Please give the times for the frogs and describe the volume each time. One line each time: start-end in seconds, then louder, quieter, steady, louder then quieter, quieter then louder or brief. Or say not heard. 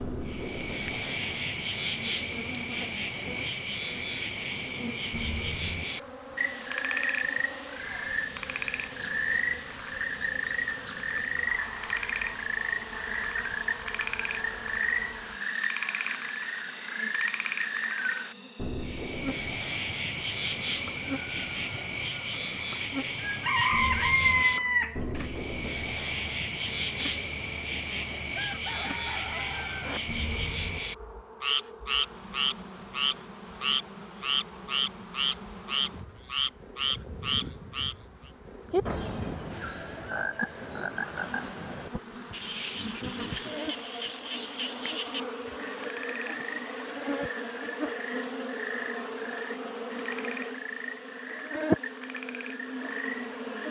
0.0-53.6 quieter.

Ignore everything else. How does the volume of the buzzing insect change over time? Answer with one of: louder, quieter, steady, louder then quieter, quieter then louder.
louder.